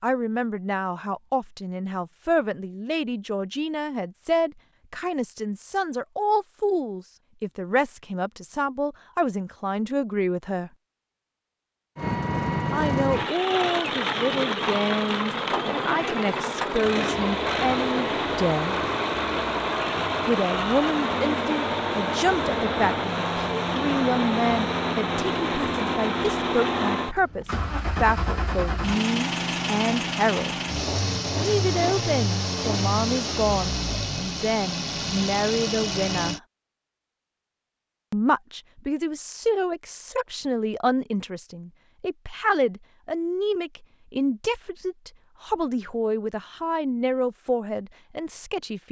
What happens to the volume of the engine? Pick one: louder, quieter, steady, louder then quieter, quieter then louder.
steady.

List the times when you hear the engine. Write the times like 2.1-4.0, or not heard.
11.9-36.4.